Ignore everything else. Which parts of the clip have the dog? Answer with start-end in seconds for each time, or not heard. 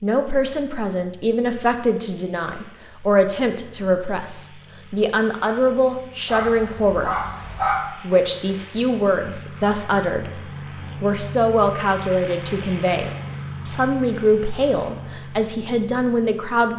6.2-7.8.